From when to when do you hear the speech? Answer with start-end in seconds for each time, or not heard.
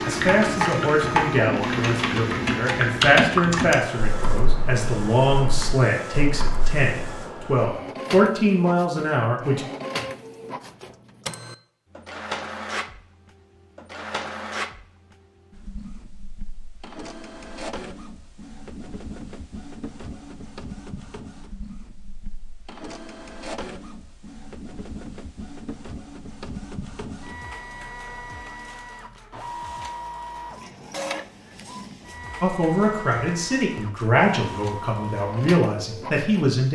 0.0-9.7, 32.4-36.7.